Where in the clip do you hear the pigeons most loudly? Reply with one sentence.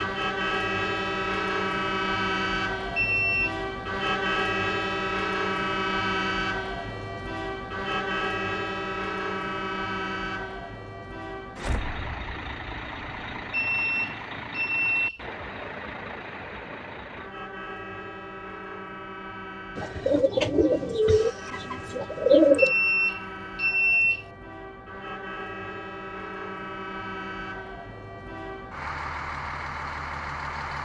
The volume of the pigeons peaks at 22 seconds.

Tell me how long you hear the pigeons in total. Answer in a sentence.
The pigeons can be heard for 3 seconds in total.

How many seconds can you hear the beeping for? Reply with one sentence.
The beeping can be heard for 4 seconds in total.